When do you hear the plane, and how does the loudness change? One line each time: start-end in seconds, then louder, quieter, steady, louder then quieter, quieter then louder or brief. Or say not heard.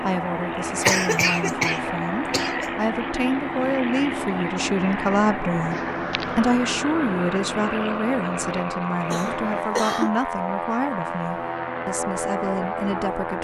0.0-13.3 steady.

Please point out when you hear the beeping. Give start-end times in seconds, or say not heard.
not heard.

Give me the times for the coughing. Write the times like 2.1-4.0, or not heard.
0.8-2.6, 5.7-6.5, 9.1-10.2.